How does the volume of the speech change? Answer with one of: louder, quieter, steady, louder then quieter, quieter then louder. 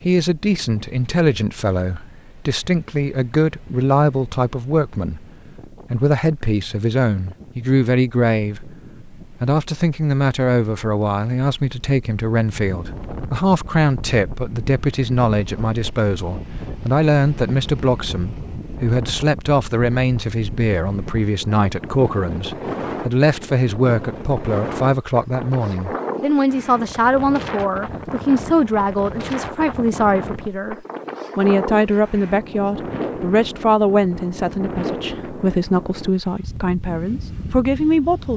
steady.